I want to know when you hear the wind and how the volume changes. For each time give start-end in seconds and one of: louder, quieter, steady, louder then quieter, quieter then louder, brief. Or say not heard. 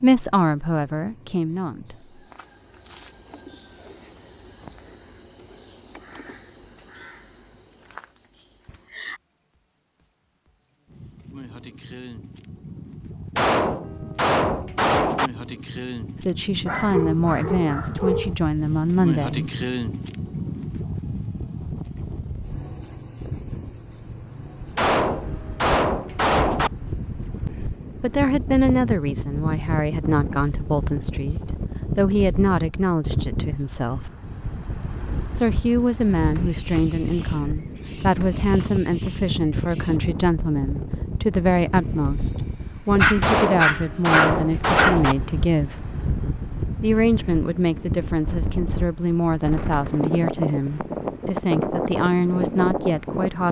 21.6-53.4 louder.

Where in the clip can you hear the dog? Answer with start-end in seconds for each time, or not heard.
16.6-18.4, 43.0-45.0.